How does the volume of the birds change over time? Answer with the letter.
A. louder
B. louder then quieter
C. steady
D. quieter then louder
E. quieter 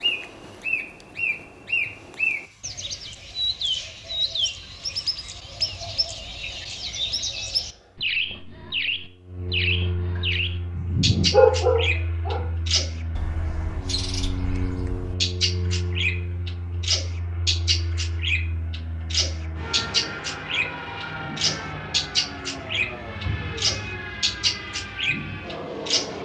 C.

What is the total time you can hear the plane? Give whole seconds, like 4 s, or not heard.
26 s.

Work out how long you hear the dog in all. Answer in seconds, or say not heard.
2 s.